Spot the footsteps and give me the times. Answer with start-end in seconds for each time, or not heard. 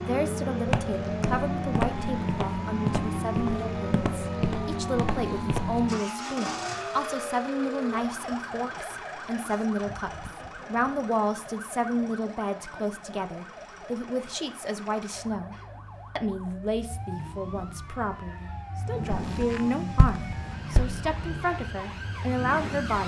0.7-5.8, 19.2-21.0.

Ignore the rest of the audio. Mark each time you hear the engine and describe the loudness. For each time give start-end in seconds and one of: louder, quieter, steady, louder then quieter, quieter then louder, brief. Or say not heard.
0.0-23.0 quieter then louder.